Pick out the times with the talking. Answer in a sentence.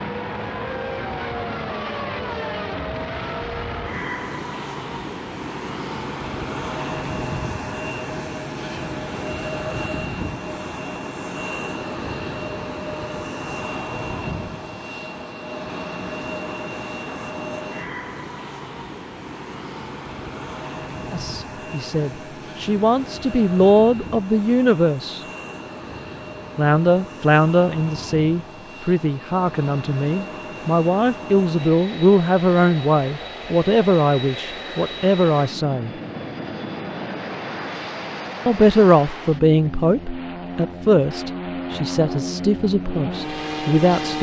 You can hear the talking from 21.1 to 25.2 s, from 26.6 to 35.9 s and from 38.5 to 44.1 s.